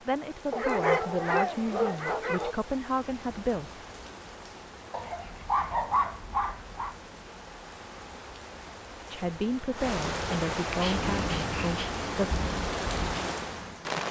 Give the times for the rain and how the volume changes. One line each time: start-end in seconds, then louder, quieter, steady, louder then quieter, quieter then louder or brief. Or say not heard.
0.0-14.0 louder.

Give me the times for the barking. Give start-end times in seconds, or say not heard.
0.5-2.5, 4.9-7.0, 10.3-11.9.